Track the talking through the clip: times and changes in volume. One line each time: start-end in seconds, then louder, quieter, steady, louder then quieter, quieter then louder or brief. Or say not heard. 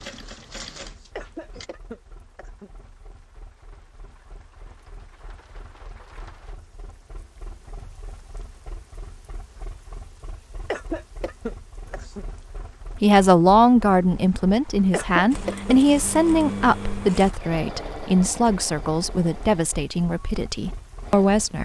12.9-21.6 quieter.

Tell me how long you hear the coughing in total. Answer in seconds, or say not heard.
4 s.